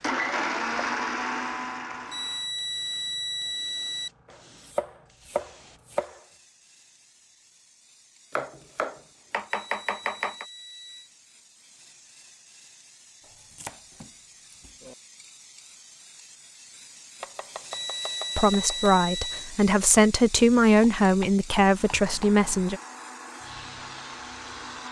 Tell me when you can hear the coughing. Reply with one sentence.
You can't hear the coughing here.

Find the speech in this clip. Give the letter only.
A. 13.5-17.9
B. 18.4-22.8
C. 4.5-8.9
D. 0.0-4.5
B.